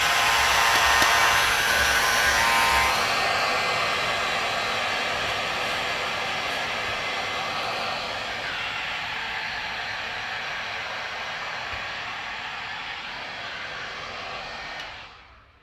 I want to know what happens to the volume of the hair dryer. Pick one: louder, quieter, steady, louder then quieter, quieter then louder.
quieter.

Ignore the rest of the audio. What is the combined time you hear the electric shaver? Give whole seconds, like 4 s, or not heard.
3 s.